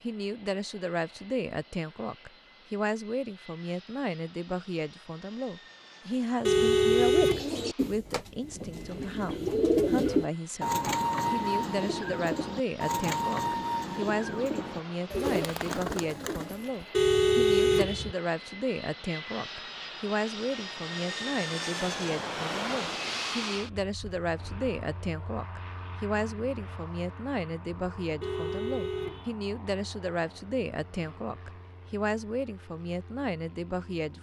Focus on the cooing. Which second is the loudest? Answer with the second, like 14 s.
10 s.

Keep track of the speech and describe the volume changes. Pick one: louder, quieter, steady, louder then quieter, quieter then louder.
steady.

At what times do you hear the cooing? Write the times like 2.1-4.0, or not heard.
7.3-16.9.